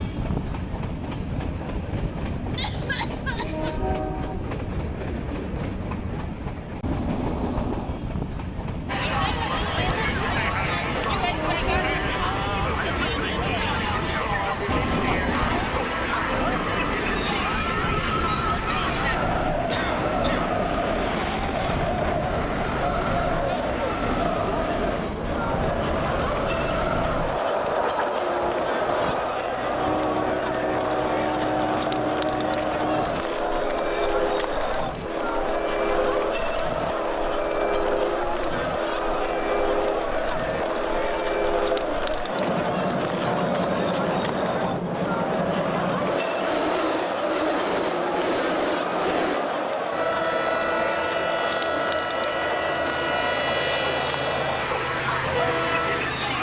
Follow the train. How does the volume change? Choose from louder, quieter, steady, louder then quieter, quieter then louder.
steady.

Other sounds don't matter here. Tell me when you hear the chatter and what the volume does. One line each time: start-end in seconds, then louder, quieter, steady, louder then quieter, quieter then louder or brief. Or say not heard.
8.8-56.3 steady.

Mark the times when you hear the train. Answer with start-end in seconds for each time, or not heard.
0.0-56.3.